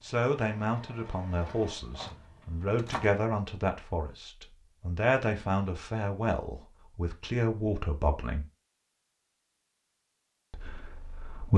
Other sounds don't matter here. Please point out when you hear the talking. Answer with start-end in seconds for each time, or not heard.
0.0-8.4, 10.5-11.5.